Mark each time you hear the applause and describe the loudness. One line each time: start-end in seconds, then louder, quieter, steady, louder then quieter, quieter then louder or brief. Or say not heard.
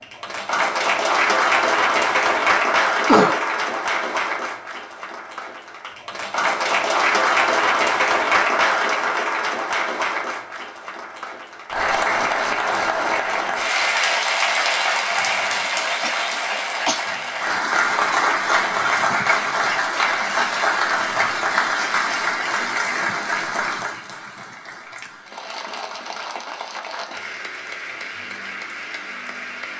0.0-29.7 quieter.